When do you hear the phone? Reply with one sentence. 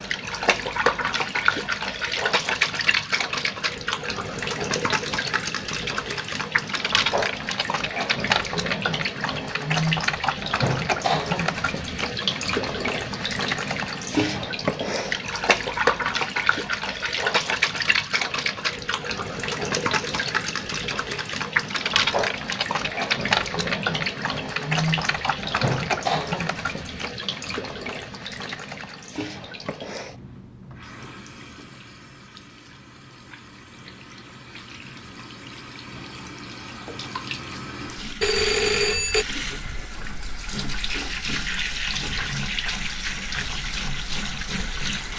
You can hear the phone from 38.2 to 39.2 s.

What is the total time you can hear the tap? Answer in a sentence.
You can hear the tap for 45 seconds altogether.